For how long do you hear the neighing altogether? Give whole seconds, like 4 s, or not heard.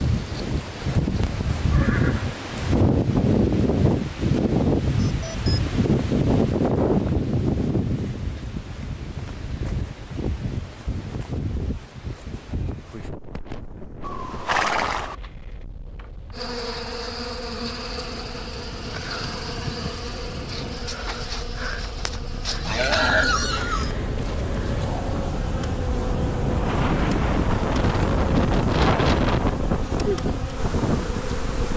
3 s.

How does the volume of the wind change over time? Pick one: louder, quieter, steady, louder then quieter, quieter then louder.
quieter then louder.